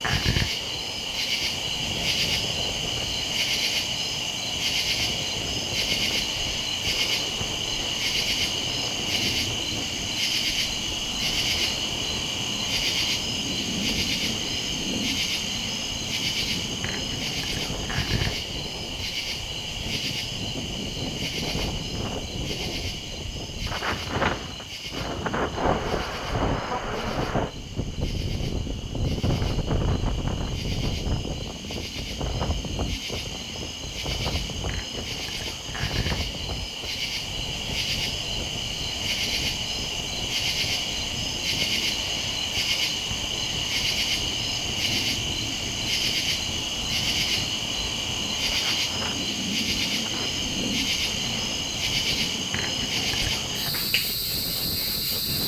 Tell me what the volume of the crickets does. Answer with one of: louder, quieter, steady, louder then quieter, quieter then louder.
quieter then louder.